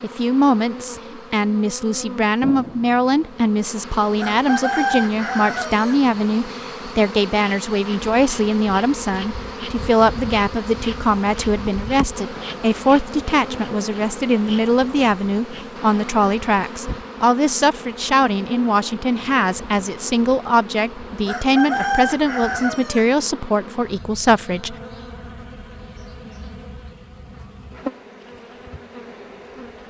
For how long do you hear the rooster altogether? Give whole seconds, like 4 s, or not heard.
4 s.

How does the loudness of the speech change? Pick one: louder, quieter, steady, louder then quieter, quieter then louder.
steady.